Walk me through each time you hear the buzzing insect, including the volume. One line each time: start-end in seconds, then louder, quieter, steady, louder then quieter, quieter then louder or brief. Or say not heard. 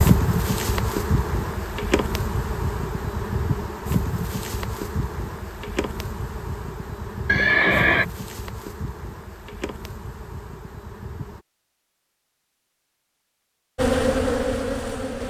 0.0-11.4 quieter
13.8-15.2 brief.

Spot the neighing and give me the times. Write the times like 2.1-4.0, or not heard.
7.2-8.1.